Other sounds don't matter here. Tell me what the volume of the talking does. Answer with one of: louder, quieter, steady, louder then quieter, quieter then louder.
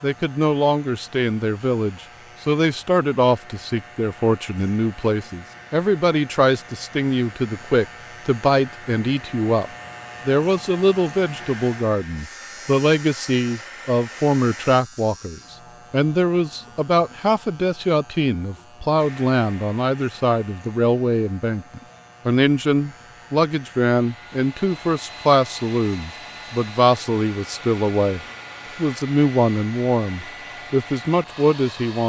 steady.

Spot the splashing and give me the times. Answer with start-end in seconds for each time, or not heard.
not heard.